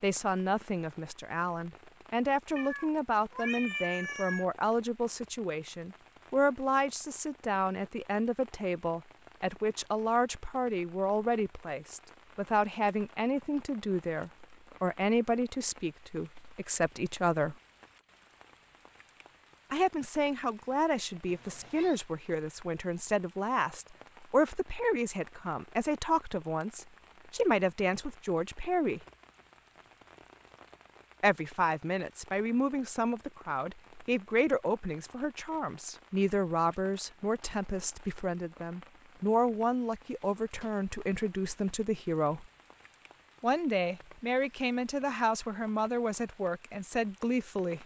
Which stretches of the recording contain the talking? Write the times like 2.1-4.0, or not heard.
0.0-17.6, 19.7-29.0, 31.2-42.5, 43.4-47.8.